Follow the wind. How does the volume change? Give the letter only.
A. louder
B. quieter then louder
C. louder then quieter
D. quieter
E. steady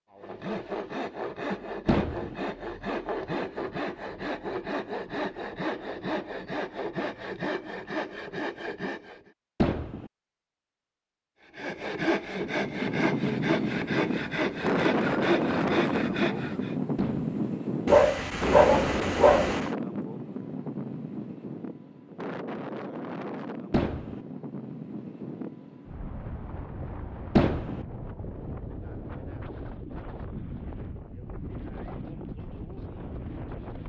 D.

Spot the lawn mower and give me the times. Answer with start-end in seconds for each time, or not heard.
not heard.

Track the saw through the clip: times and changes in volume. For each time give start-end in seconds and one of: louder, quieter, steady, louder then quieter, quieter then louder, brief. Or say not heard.
0.1-9.3 steady
11.4-16.8 steady.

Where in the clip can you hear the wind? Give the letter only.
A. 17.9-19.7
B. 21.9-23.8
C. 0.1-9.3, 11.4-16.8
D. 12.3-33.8
D.